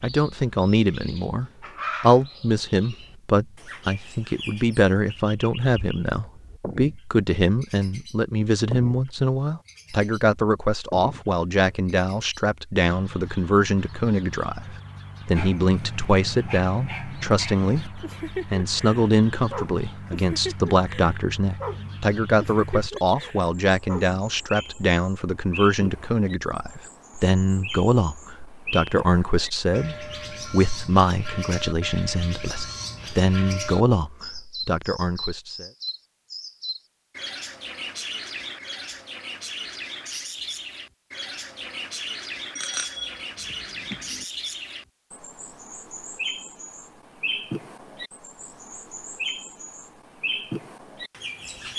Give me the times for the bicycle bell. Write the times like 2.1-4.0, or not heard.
42.5-44.2.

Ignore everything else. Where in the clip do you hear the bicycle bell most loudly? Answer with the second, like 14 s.
43 s.